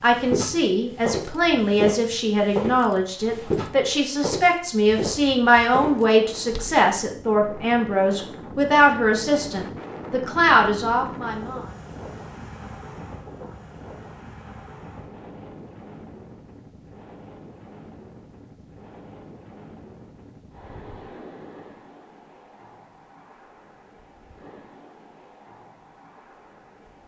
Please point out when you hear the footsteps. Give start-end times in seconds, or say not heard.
0.1-6.8.